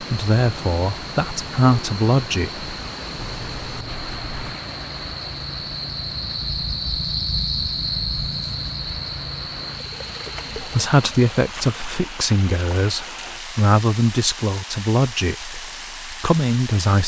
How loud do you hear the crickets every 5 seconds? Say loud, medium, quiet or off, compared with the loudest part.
medium, loud, medium, off.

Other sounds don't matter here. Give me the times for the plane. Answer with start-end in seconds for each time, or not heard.
not heard.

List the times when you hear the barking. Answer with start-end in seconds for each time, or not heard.
3.2-4.5.